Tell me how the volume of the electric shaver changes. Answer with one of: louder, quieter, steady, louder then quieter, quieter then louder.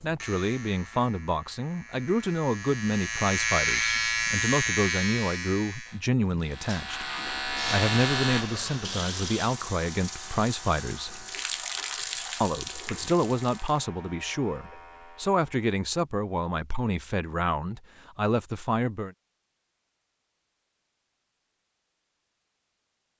louder then quieter.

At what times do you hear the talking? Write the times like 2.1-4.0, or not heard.
0.0-7.0, 7.7-11.2, 12.4-19.1.